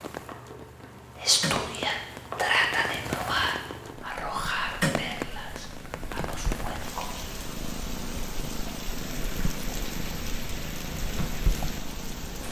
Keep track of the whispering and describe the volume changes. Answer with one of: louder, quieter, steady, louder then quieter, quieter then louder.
quieter.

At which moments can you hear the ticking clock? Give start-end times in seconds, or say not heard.
not heard.